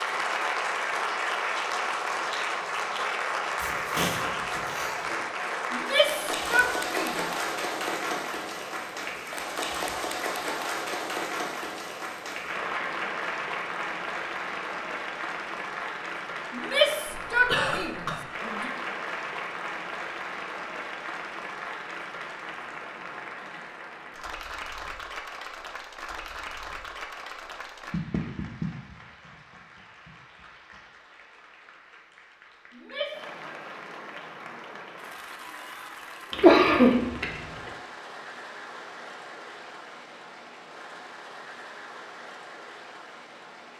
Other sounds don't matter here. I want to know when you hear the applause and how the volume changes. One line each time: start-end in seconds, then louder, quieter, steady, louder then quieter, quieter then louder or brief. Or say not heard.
0.0-43.7 quieter.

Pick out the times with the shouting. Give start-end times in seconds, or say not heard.
5.7-7.2, 16.5-18.8, 32.7-33.2.